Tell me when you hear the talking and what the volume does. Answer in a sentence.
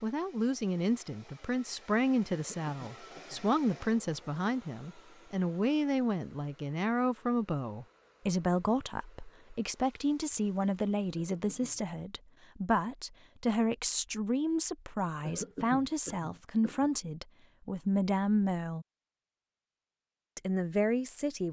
The talking can be heard from 0.0 to 18.9 s, at a steady volume; and briefly from 20.4 to 21.4 s.